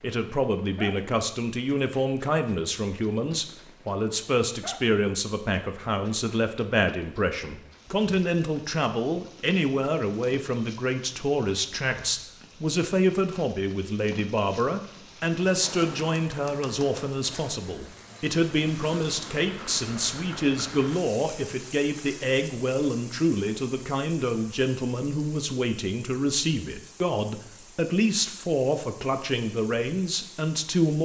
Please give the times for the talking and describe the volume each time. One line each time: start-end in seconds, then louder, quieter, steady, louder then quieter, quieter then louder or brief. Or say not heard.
0.0-31.0 steady.